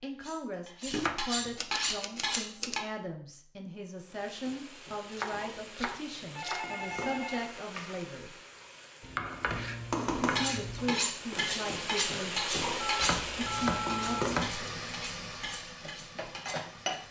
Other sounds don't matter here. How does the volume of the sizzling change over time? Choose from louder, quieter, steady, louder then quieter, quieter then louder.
louder.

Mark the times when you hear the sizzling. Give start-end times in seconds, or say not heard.
4.0-17.0.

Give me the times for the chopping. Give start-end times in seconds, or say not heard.
0.9-2.8, 5.1-6.7, 9.0-10.9, 13.0-14.6.